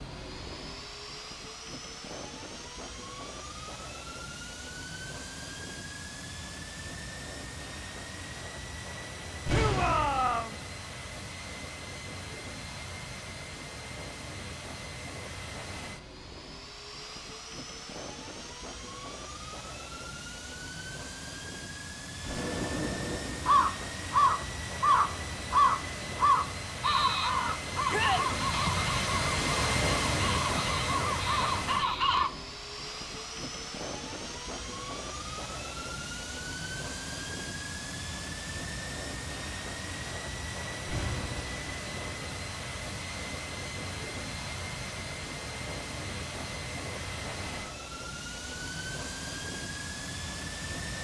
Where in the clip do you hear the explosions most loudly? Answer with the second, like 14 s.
10 s.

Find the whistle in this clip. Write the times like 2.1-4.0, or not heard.
not heard.